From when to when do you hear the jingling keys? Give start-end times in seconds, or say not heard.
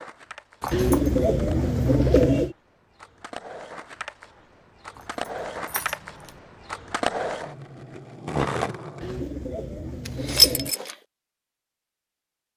0.6-1.2, 5.0-6.4, 10.1-10.9.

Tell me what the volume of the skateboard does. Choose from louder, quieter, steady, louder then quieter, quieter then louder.
louder.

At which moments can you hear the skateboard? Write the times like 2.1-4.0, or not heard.
0.0-9.2.